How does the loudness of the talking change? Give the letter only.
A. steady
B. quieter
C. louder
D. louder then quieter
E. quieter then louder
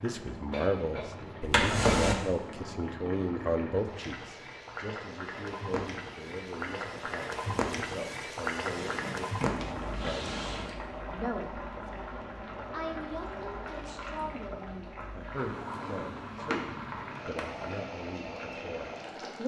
B.